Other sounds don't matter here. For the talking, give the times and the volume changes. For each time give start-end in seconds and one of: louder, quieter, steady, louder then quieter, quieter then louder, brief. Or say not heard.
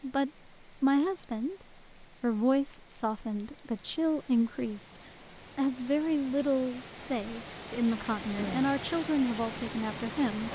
0.0-10.5 steady.